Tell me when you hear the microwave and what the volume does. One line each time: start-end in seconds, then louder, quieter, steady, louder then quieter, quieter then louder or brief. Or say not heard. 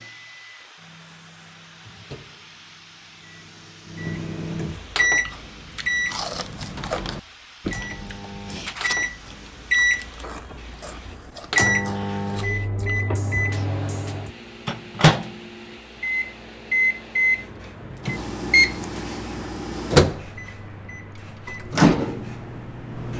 0.0-23.1 louder.